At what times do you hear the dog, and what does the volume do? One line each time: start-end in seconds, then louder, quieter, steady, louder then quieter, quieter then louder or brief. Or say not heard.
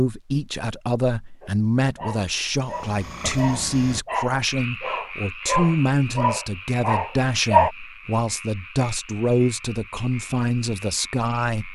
1.4-7.7 louder.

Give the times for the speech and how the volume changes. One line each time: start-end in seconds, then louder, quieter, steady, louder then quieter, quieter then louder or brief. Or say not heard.
0.0-11.7 steady.